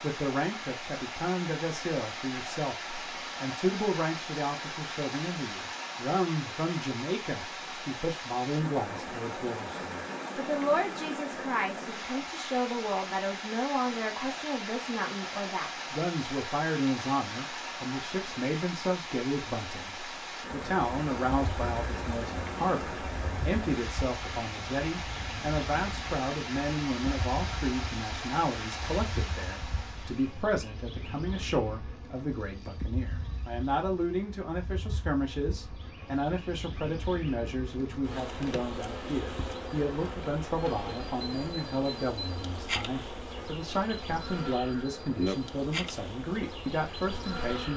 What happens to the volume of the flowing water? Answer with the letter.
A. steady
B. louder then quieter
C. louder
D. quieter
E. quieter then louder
A.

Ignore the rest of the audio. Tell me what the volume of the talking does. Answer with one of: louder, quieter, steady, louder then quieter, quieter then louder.
steady.